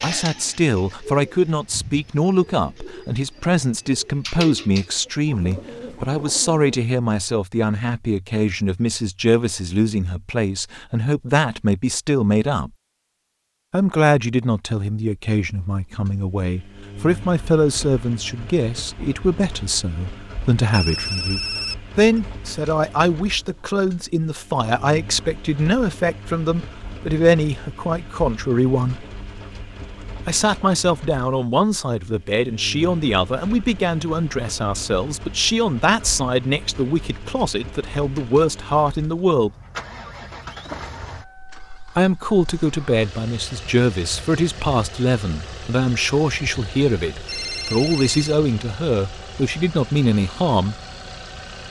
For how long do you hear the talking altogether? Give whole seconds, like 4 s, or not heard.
46 s.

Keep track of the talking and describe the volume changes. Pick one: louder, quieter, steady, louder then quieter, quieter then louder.
steady.